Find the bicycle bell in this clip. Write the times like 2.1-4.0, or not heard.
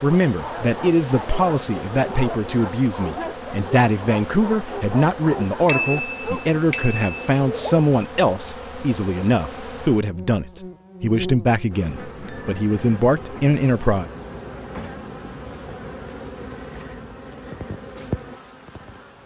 5.7-7.3, 12.2-12.8.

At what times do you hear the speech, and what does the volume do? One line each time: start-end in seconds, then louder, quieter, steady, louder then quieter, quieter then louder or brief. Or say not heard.
0.0-14.1 steady.